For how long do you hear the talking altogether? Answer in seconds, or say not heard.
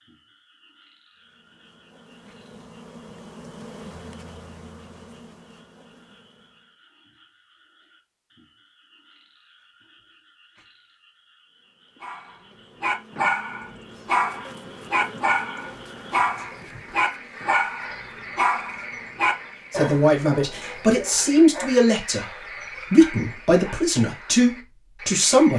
6 s.